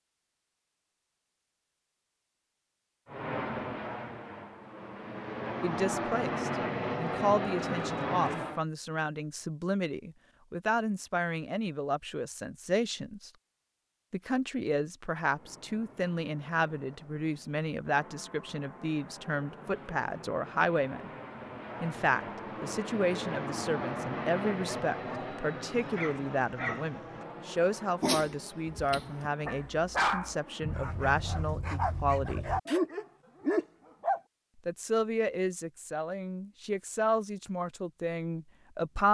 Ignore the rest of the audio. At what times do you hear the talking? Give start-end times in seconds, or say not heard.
5.6-13.3, 14.1-21.1, 21.8-32.5, 34.6-39.0.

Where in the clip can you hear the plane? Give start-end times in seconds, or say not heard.
3.0-8.7, 15.2-31.4.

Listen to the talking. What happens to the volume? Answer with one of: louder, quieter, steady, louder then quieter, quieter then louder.
steady.